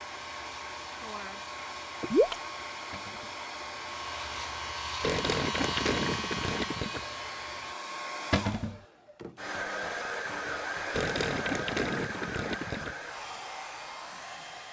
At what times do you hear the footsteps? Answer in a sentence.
You can't hear the footsteps here.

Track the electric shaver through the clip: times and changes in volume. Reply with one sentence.
You can hear the electric shaver from 0.0 to 7.8 s, getting louder.